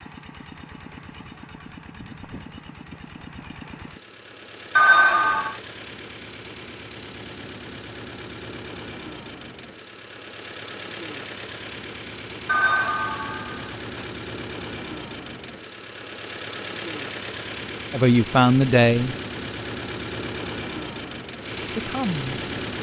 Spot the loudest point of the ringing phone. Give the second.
5 s.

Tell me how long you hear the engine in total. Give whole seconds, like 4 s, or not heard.
23 s.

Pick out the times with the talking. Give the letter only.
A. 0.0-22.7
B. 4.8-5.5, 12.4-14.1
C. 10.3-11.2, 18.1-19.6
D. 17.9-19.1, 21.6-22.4
D.